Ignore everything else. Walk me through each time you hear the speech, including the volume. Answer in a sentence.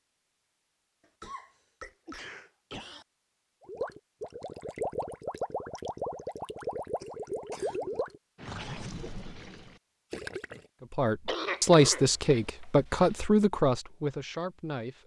You can hear the speech from 10.9 to 15.0 s, getting quieter.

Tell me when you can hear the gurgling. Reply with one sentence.
You can hear the gurgling from 3.6 to 10.7 s.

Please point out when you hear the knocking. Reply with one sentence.
You can't hear the knocking here.